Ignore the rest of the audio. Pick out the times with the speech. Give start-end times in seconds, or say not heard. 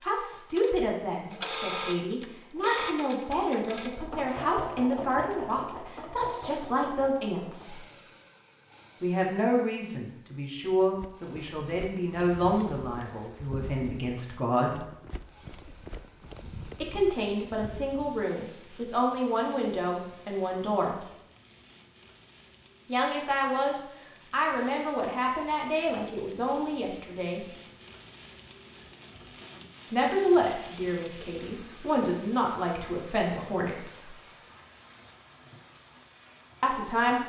0.0-7.8, 9.0-14.8, 16.8-21.1, 22.9-27.4, 29.9-34.1, 36.6-37.2.